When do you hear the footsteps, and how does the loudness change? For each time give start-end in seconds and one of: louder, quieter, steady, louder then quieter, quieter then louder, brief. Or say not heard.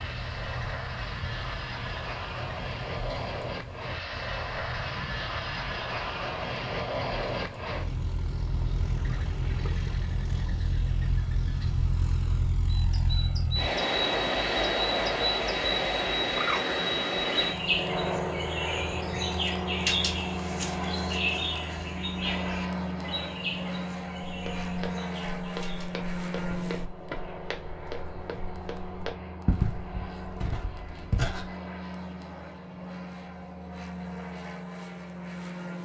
24.2-31.5 louder then quieter.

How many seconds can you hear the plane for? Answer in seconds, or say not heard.
36 s.